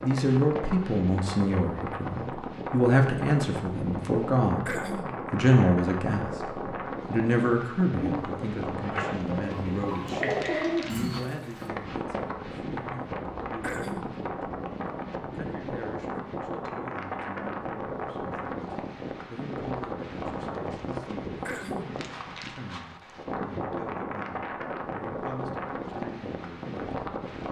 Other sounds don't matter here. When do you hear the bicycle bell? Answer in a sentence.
You can't hear the bicycle bell here.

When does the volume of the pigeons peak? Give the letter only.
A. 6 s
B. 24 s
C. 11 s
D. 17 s
C.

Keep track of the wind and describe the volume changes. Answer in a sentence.
The loudness of the wind stays about the same.